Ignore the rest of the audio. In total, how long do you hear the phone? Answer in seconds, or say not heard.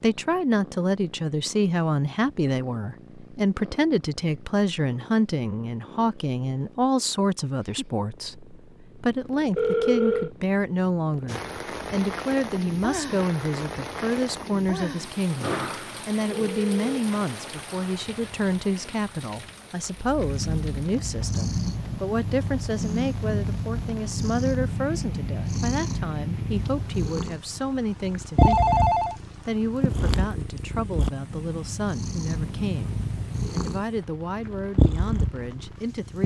2 s.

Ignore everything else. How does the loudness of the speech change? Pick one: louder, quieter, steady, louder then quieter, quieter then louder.
quieter.